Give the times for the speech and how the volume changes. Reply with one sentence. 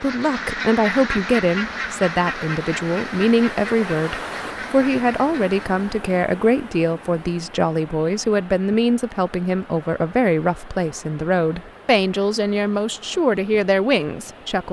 The speech can be heard from 0.0 to 14.6 s, at a steady volume.